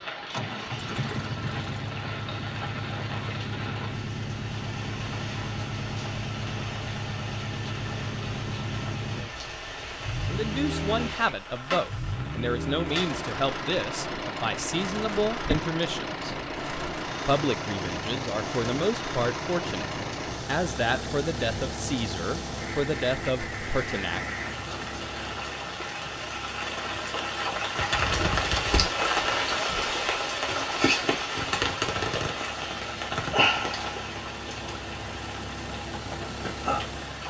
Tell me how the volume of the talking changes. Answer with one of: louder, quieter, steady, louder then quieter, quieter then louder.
steady.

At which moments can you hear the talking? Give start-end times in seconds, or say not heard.
10.2-16.2, 17.2-24.2.